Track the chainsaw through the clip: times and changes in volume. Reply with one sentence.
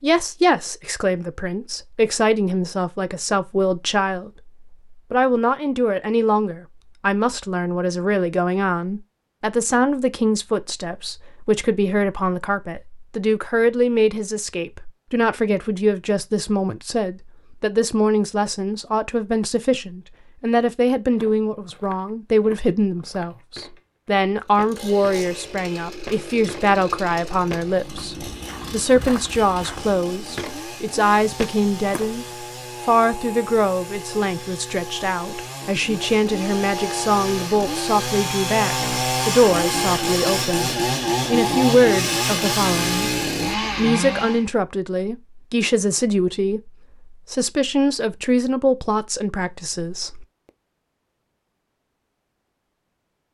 The chainsaw can be heard from 24.4 to 44.5 s, getting louder.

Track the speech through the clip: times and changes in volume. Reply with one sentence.
The speech can be heard from 0.0 to 50.2 s, at a steady volume.